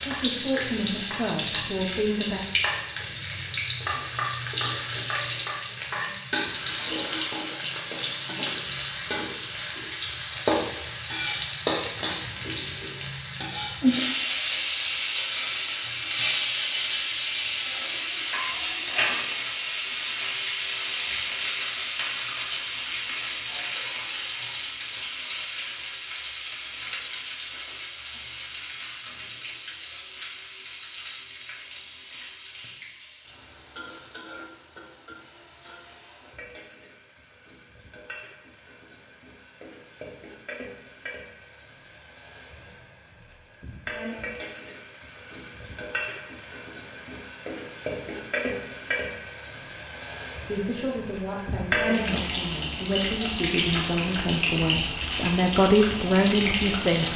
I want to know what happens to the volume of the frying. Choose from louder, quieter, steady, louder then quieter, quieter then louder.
quieter then louder.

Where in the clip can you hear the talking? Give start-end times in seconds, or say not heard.
0.1-2.5, 50.4-57.1.